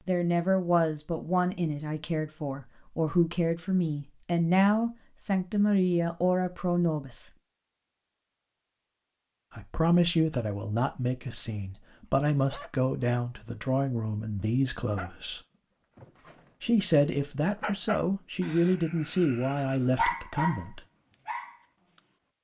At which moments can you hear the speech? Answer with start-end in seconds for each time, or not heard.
0.1-7.3, 9.5-15.4, 16.6-20.8.